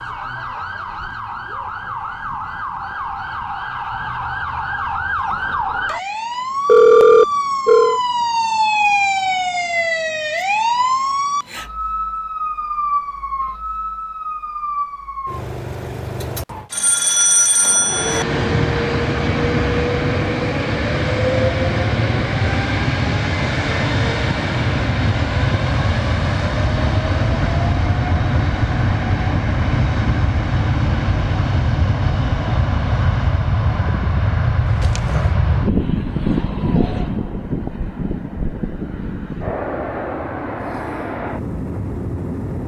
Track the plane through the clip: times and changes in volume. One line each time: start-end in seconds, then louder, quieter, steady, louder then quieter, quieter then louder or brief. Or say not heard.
17.8-42.6 quieter.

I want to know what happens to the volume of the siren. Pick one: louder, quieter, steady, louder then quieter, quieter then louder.
louder then quieter.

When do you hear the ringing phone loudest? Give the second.
7 s.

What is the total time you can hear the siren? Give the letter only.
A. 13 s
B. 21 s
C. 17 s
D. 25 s
C.